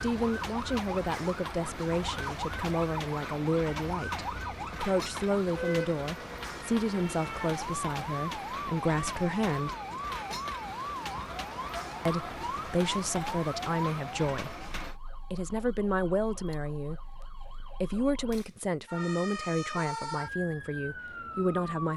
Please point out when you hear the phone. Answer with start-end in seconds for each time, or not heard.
not heard.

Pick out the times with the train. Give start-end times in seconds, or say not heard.
0.0-15.0.